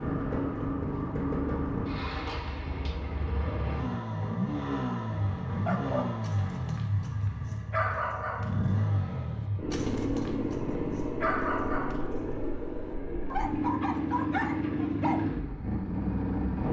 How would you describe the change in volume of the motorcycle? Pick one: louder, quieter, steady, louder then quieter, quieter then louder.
steady.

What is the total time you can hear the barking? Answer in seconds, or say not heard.
10 s.